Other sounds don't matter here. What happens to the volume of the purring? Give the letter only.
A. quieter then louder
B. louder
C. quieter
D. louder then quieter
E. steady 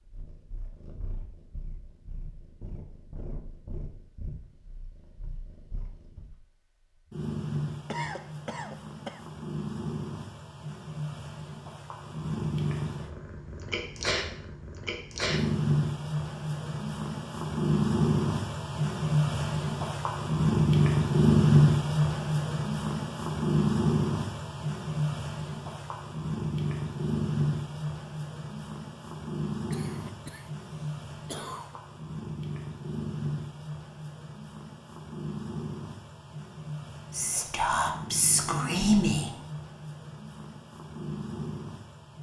D.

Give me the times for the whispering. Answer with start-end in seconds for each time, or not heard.
37.1-39.4.